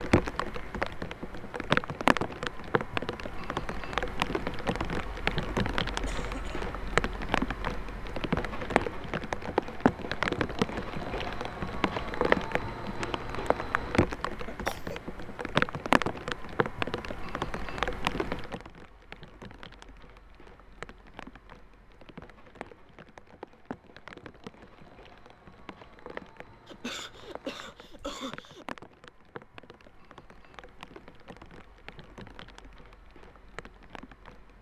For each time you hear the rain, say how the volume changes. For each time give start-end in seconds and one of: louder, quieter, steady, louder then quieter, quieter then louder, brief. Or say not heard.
0.0-34.5 quieter.